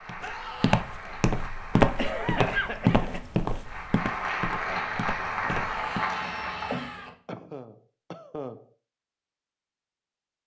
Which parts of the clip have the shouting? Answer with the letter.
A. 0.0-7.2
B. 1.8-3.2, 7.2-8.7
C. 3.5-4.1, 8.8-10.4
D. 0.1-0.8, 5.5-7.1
D.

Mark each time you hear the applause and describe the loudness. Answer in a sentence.
You can hear the applause from 0.0 to 7.2 s, getting louder.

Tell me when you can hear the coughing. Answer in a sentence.
The coughing can be heard from 1.8 to 3.2 s and from 7.2 to 8.7 s.